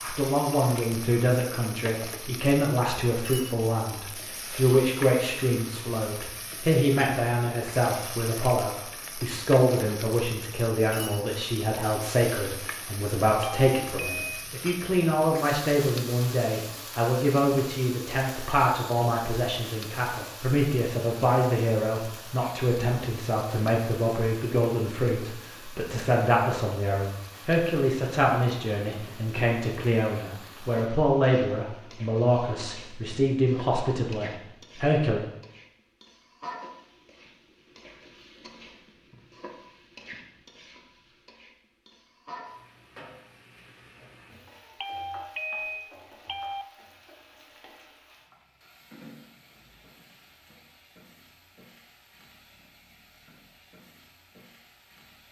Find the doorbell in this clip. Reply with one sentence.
The doorbell can be heard from 13.4 to 14.4 s and from 44.8 to 46.6 s.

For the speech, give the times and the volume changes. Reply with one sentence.
You can hear the speech from 0.0 to 35.2 s, at a steady volume.